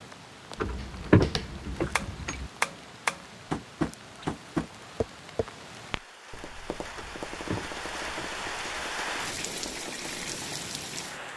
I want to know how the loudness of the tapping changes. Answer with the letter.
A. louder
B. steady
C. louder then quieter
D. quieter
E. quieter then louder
D.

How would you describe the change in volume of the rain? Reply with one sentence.
The loudness of the rain goes up.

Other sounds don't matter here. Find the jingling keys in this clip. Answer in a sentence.
The jingling keys can be heard from 0.6 to 2.5 s and from 7.0 to 8.8 s.